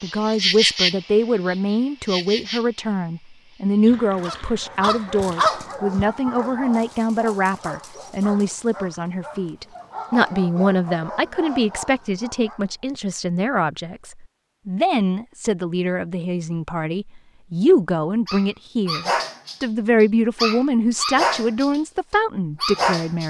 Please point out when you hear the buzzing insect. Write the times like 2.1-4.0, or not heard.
0.0-5.5.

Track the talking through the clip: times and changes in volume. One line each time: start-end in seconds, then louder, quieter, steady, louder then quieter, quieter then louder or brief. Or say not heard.
0.0-23.2 steady.